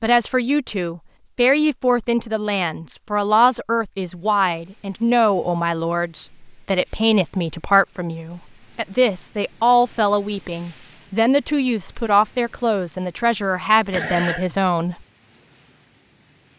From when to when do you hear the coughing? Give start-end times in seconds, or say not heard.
13.9-14.6.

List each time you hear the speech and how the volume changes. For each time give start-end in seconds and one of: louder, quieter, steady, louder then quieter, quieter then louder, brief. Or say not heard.
0.0-14.9 steady.